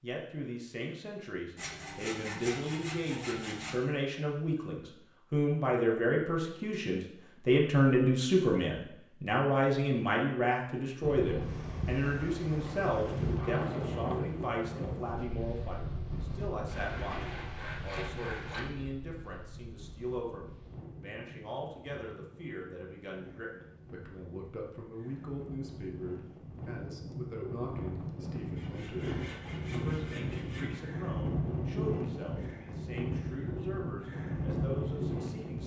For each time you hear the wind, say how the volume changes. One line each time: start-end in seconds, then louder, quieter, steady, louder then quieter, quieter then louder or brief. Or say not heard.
11.0-35.6 quieter then louder.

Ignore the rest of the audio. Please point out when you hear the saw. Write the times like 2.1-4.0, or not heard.
1.6-3.8, 16.6-18.6, 28.6-30.9.